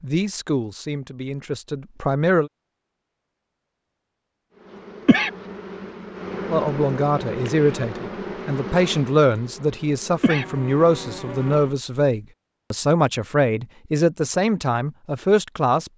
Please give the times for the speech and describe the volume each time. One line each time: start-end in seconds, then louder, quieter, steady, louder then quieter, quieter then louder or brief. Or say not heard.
0.0-2.5 brief
6.5-15.9 steady.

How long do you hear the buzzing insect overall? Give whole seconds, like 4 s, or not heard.
7 s.